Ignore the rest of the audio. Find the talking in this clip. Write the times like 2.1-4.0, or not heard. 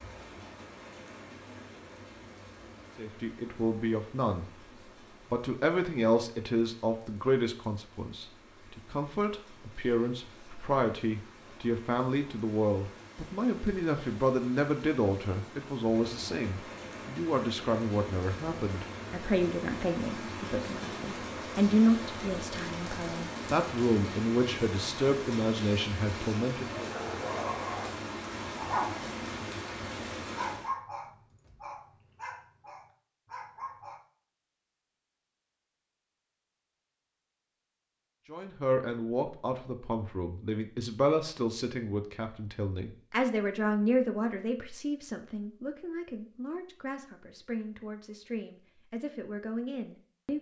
3.0-4.5, 5.3-26.9, 38.2-50.3.